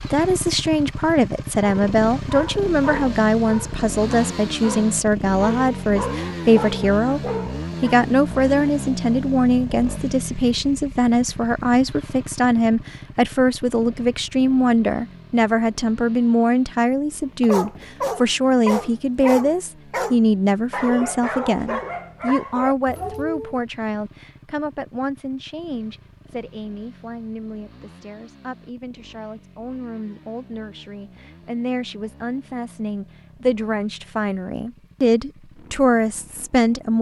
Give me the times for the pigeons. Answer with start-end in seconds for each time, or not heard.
not heard.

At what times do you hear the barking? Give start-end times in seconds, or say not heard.
1.6-8.0, 17.4-23.6.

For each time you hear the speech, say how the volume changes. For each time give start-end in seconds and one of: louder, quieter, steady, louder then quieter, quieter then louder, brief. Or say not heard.
0.1-7.2 steady
7.8-36.9 quieter then louder.